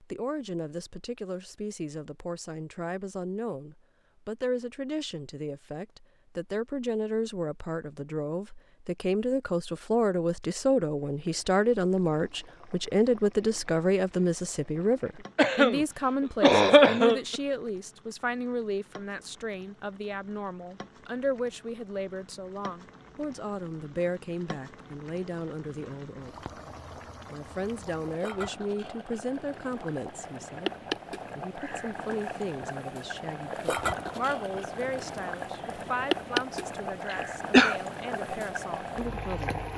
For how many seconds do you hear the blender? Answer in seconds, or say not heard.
not heard.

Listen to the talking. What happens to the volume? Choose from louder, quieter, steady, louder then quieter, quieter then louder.
louder then quieter.